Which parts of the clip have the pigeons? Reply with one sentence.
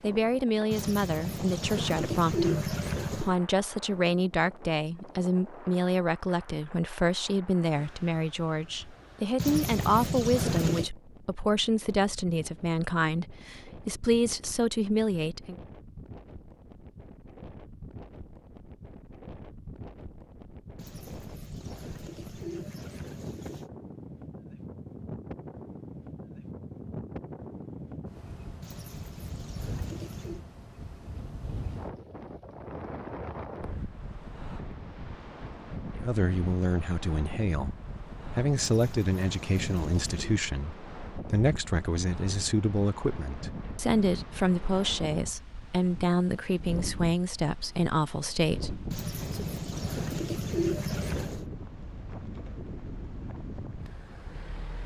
You can hear the pigeons from 0.7 to 3.4 s, from 9.3 to 10.9 s, from 20.8 to 23.7 s, from 28.6 to 30.4 s, from 38.5 to 40.2 s and from 48.9 to 51.5 s.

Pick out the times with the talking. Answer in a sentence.
The talking can be heard from 0.0 to 15.6 s, from 36.0 to 37.8 s and from 38.4 to 49.5 s.